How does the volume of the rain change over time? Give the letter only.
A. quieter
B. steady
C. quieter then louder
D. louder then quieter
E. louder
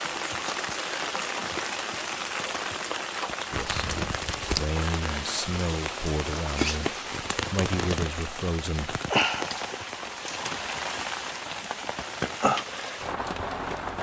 B.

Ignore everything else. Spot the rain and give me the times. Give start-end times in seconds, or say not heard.
0.0-13.9.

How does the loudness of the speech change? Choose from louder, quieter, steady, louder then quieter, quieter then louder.
steady.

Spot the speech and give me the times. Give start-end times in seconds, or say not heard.
3.5-9.0.